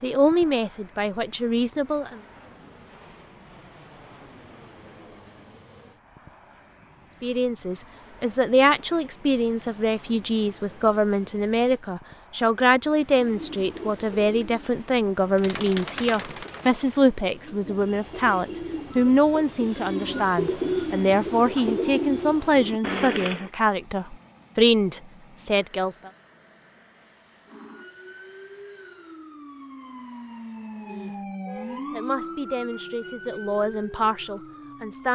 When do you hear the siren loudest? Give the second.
32 s.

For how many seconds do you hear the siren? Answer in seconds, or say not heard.
8 s.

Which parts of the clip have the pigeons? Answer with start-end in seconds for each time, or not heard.
12.9-23.5.